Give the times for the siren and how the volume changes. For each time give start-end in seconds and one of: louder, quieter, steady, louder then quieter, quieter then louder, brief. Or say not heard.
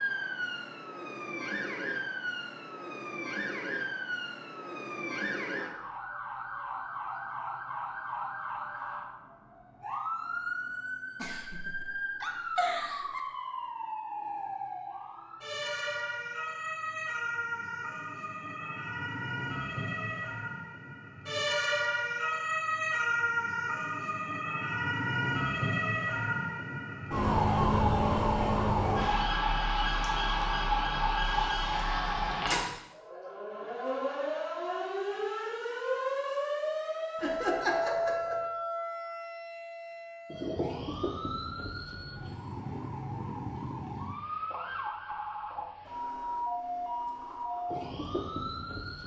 0.0-49.0 louder then quieter.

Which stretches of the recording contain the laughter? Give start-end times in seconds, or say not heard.
11.2-13.2, 37.1-38.5.